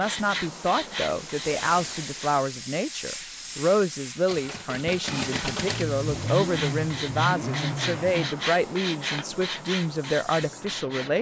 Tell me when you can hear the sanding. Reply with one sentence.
You can hear the sanding from 0.0 to 2.5 s and from 5.2 to 11.1 s.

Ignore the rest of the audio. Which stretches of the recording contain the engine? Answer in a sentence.
The engine can be heard from 4.2 to 8.3 s.